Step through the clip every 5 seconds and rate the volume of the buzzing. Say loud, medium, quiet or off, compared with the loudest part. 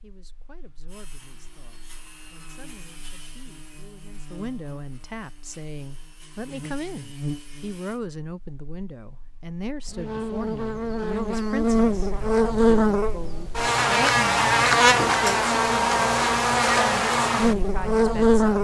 quiet, quiet, loud, loud.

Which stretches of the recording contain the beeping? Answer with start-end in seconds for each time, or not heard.
not heard.